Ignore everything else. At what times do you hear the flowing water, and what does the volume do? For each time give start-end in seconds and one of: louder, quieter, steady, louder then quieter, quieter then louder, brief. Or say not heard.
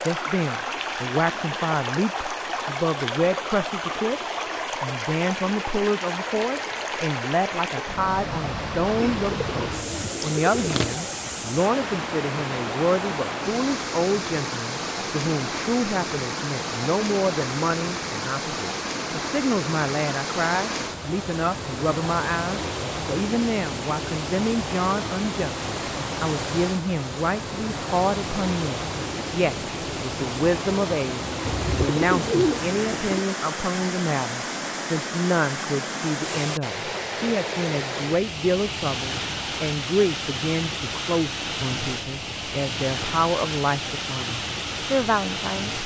0.0-45.8 steady.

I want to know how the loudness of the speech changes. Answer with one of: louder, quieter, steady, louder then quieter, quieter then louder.
steady.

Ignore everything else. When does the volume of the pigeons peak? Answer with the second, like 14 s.
32 s.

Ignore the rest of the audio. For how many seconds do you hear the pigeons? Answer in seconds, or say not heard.
4 s.